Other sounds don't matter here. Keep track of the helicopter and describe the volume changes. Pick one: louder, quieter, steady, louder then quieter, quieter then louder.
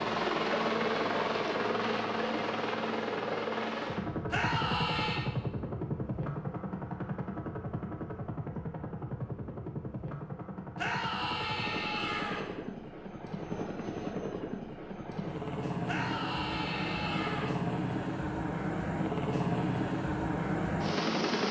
quieter then louder.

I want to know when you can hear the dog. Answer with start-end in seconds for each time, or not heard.
not heard.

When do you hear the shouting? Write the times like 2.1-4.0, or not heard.
4.3-5.2, 10.8-12.4, 15.8-17.5.